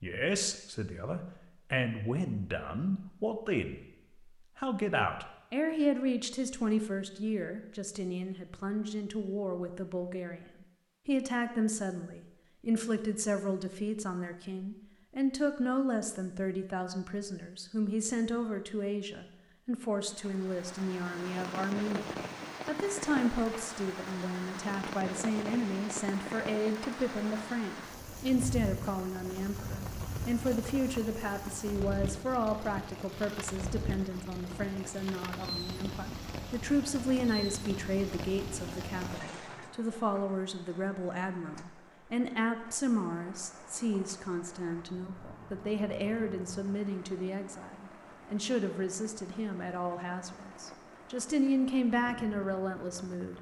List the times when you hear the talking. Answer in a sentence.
The talking can be heard from 0.0 to 10.4 s and from 11.1 to 53.3 s.